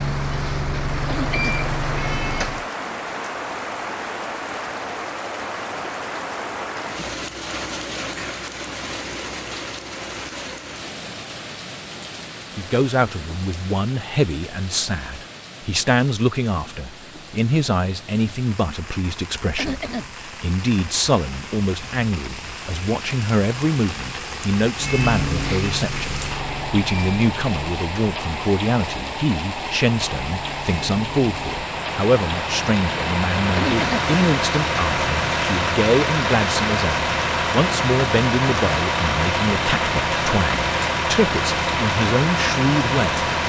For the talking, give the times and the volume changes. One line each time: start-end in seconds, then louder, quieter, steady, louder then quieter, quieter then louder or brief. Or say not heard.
12.6-43.2 steady.